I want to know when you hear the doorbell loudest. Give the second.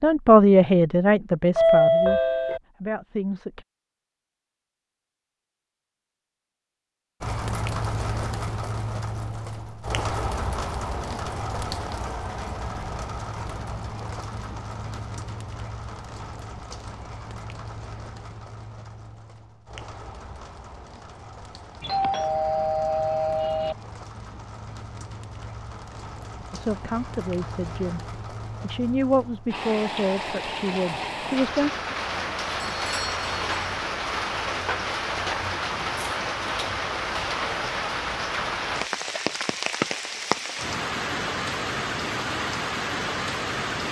2 s.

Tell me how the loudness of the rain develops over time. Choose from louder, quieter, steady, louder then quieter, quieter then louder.
quieter then louder.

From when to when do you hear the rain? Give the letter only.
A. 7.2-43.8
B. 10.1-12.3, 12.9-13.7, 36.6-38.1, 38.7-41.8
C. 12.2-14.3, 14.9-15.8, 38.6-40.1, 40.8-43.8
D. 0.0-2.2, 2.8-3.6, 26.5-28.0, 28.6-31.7
A.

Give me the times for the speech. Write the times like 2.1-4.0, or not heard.
0.0-2.2, 2.8-3.6, 26.5-28.0, 28.6-31.7.